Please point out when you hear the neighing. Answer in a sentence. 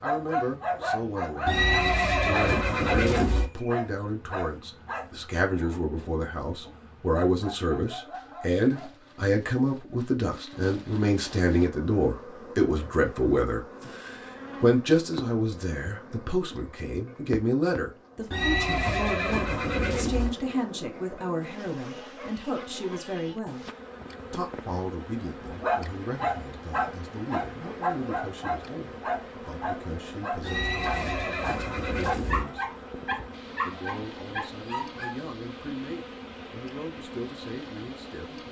The neighing can be heard from 1.4 to 3.5 s, from 18.3 to 20.3 s and from 30.4 to 32.5 s.